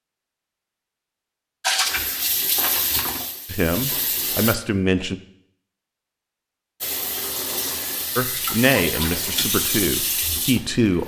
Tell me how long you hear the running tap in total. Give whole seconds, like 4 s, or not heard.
7 s.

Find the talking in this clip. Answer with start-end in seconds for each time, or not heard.
3.5-5.2, 8.2-11.0.